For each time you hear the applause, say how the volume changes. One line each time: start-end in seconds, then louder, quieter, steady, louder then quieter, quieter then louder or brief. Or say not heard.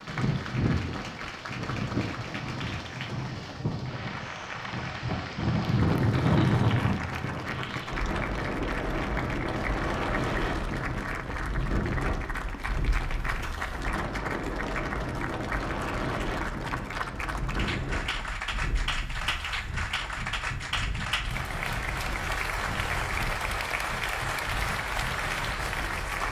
0.0-26.2 louder.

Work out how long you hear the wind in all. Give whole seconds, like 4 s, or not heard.
26 s.